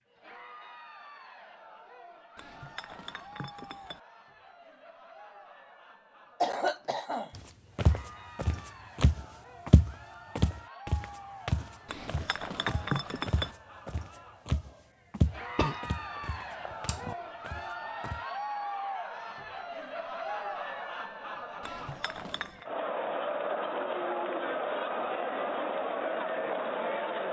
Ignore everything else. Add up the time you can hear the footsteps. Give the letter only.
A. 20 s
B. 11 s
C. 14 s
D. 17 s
B.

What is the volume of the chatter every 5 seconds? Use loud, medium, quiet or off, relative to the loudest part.
quiet, quiet, quiet, medium, loud, loud.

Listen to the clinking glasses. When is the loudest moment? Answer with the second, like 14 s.
13 s.